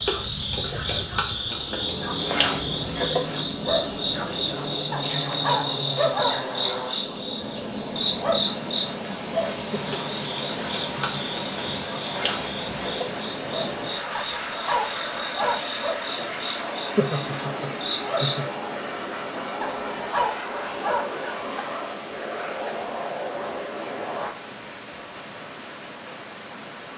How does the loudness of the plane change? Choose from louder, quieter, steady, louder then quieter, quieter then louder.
steady.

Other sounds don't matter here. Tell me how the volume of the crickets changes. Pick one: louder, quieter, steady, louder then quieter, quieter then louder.
quieter.